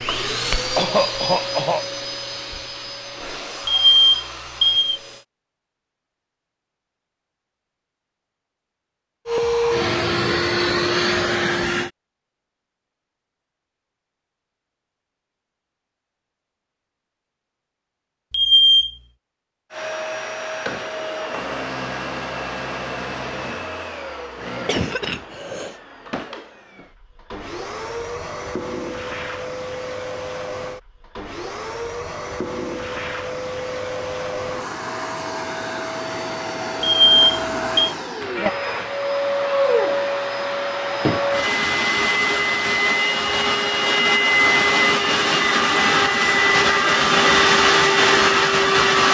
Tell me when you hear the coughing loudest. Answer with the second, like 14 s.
1 s.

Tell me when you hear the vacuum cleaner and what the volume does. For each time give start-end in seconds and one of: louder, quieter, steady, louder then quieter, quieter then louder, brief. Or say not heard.
0.0-5.2 quieter
9.2-11.9 brief
19.7-49.0 louder.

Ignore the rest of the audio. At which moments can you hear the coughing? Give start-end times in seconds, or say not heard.
0.8-1.9, 24.6-25.8, 38.2-38.9.